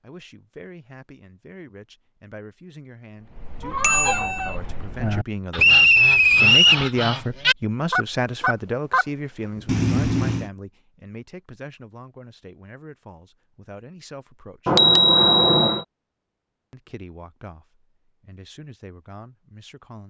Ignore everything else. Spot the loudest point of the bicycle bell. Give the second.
15 s.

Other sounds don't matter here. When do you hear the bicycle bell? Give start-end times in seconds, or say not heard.
3.8-4.5, 9.7-10.5, 14.7-15.8.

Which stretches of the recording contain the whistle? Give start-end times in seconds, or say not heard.
5.5-6.8.